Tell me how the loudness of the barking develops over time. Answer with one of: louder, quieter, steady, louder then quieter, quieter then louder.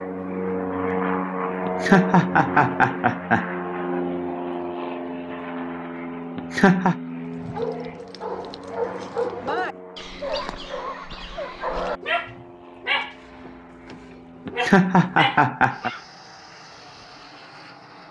steady.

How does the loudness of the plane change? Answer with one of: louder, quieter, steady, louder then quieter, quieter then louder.
quieter.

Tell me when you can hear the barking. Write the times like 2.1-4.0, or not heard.
7.3-16.0.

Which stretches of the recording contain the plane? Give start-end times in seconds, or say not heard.
0.0-18.0.